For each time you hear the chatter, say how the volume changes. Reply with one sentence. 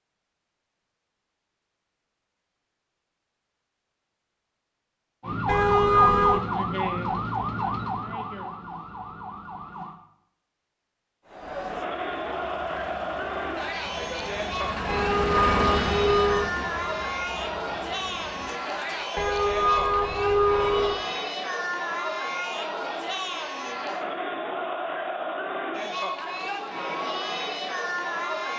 The chatter can be heard from 11.2 to 28.5 s, at a steady volume.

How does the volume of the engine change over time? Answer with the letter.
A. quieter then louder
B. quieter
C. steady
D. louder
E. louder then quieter
E.